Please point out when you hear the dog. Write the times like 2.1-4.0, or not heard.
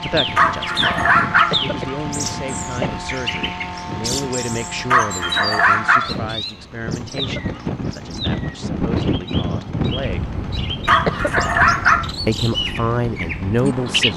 0.3-1.6, 4.9-6.2, 10.8-12.1.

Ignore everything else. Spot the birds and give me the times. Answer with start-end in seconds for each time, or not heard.
0.0-14.1.